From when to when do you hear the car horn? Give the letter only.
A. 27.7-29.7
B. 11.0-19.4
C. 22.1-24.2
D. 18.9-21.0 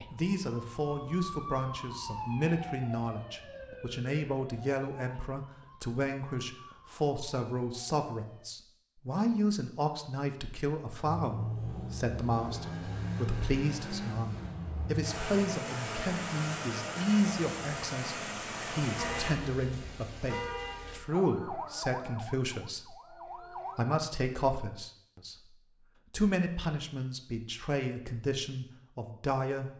D.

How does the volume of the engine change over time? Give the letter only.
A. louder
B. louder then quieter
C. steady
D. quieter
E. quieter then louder
C.